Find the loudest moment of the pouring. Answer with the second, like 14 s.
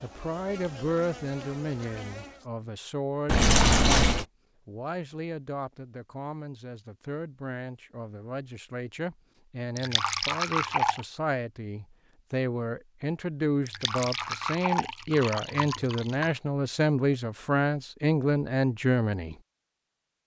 4 s.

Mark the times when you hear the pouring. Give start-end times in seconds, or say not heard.
3.2-4.2, 9.8-11.1, 13.7-16.4.